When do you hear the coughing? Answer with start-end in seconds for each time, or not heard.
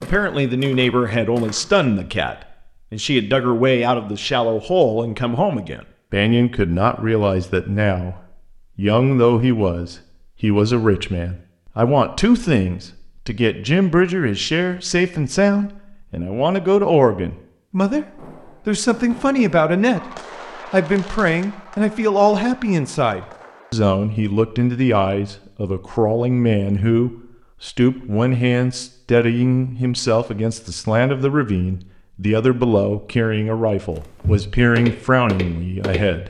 not heard.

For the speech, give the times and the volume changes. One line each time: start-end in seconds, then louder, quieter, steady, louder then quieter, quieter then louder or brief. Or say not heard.
0.0-36.2 steady.